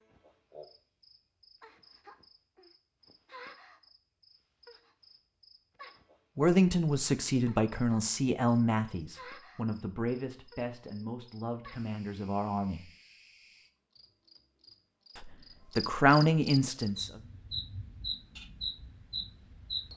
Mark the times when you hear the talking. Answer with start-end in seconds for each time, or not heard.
6.3-12.9, 15.2-17.2.